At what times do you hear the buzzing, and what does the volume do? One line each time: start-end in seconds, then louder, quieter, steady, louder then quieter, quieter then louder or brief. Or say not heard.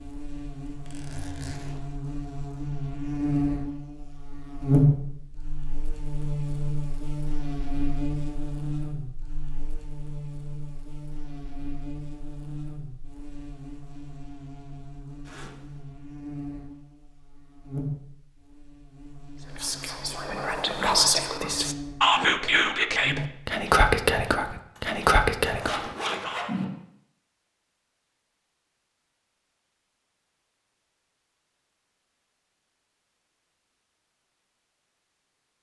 0.0-23.6 quieter.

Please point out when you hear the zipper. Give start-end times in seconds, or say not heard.
0.7-1.9, 15.2-15.8, 24.8-26.6.